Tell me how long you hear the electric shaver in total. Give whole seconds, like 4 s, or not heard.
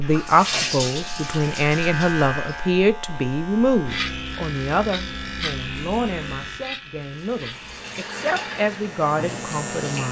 10 s.